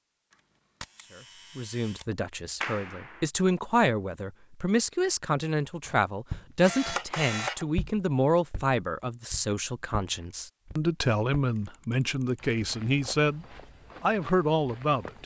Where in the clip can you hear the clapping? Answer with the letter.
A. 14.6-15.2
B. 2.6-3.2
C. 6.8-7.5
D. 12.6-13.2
B.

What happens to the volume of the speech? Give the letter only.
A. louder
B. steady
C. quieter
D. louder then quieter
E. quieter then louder
B.